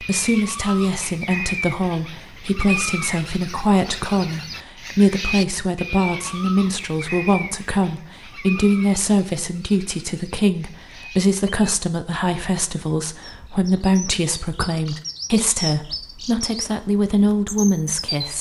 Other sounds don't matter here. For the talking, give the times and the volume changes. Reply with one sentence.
You can hear the talking from 0.0 to 18.3 s, at a steady volume.